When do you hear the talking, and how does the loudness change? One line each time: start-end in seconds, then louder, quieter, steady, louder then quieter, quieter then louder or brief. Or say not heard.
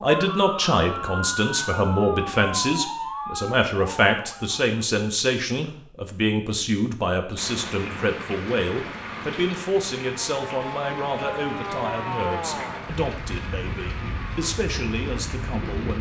0.0-15.9 quieter.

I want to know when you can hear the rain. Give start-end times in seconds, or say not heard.
7.3-15.9.